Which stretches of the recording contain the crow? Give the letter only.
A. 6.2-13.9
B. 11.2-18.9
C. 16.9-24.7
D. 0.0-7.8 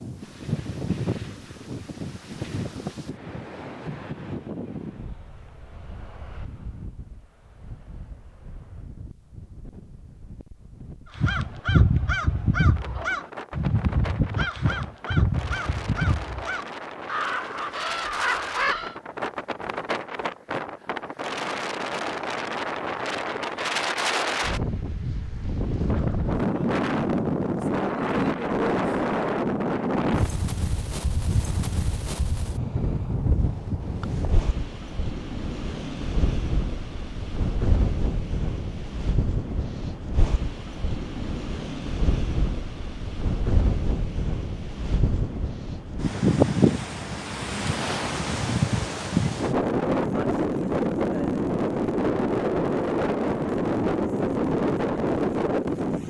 B.